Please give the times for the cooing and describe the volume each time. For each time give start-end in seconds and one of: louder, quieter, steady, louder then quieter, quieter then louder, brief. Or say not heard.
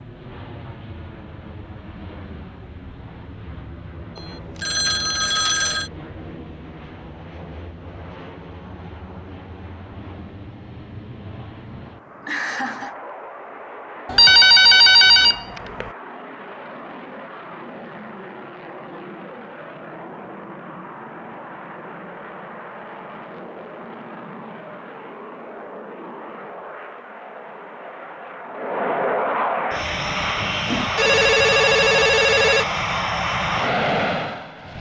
not heard.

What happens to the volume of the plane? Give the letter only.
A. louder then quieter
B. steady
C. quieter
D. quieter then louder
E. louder
E.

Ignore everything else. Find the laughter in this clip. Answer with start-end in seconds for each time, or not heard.
12.2-12.9.